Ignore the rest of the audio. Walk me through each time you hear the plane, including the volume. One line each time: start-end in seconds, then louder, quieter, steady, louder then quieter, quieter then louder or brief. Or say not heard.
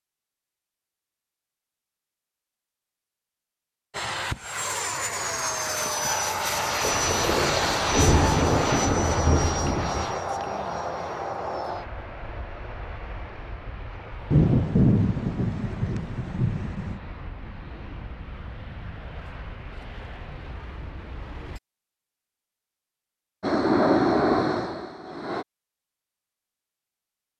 3.9-21.6 quieter
23.4-25.4 brief.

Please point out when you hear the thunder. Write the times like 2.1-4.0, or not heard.
6.8-10.2, 14.3-17.0.